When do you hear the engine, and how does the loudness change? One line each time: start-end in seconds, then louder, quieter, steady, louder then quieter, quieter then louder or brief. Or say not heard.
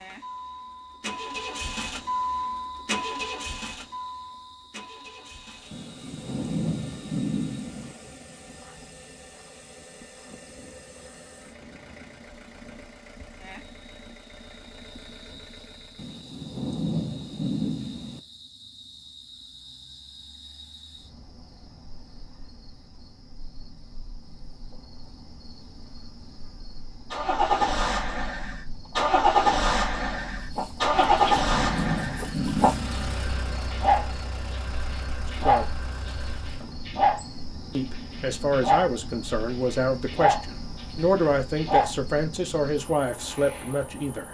0.0-16.2 quieter
27.1-36.8 quieter.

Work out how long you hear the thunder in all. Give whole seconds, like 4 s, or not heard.
7 s.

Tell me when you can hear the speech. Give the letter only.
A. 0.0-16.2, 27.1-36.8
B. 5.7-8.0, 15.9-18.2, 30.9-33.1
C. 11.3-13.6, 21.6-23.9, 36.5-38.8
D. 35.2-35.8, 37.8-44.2
D.